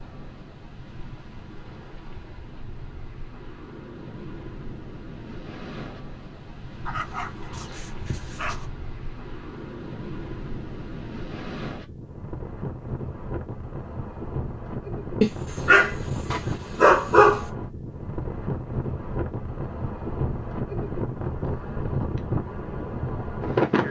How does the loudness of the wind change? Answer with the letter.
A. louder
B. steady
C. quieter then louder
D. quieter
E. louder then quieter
A.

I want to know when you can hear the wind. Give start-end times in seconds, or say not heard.
0.0-23.8.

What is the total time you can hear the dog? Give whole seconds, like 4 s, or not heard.
4 s.